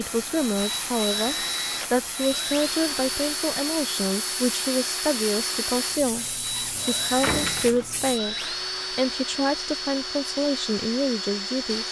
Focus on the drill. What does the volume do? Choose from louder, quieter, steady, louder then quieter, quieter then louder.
steady.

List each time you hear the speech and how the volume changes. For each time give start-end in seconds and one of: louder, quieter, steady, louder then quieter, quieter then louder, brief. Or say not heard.
0.0-11.8 steady.